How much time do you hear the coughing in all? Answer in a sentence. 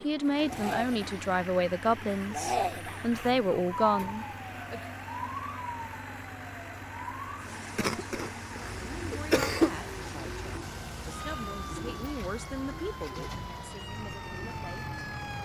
You can hear the coughing for 2 seconds altogether.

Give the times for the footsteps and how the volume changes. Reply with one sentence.
The footsteps can't be heard in this clip.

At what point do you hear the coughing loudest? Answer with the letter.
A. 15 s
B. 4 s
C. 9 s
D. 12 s
C.